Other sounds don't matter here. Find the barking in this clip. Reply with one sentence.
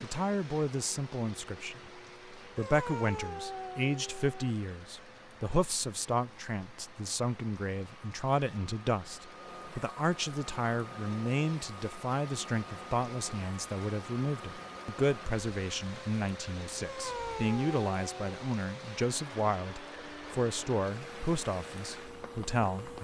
The barking can be heard from 2.5 to 4.5 s and from 16.8 to 18.5 s.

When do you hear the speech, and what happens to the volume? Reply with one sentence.
You can hear the speech from 0.0 to 22.9 s, at a steady volume.